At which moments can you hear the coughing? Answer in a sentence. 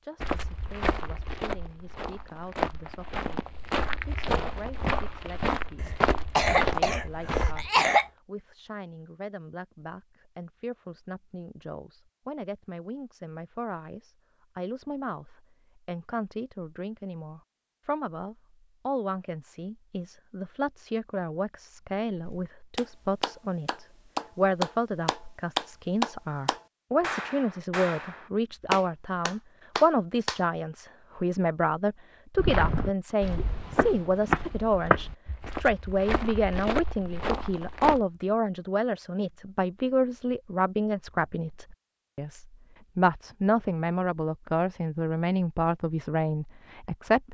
The coughing can be heard from 5.8 to 8.1 s.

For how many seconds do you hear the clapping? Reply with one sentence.
The clapping can be heard for 8 seconds in total.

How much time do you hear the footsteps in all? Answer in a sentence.
The footsteps can be heard for 13 seconds in total.